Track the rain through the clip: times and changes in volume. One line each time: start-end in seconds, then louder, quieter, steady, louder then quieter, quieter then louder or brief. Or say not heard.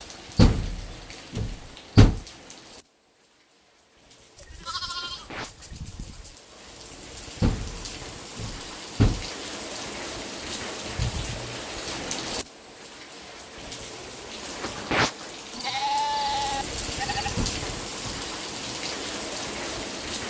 0.0-20.2 louder.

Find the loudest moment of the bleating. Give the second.
16 s.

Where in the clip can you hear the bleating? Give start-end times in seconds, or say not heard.
4.3-6.3, 15.5-17.4.